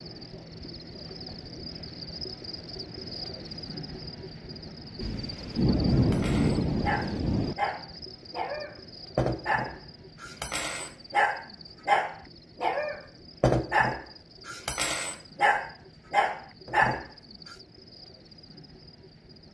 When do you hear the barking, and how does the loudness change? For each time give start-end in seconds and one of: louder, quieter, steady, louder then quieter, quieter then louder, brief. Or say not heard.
5.9-17.6 louder.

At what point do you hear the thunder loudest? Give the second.
6 s.